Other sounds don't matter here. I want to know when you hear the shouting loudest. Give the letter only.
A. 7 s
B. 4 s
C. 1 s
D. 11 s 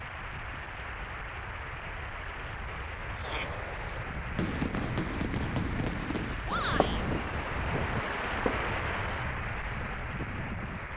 A.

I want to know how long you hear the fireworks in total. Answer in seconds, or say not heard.
6 s.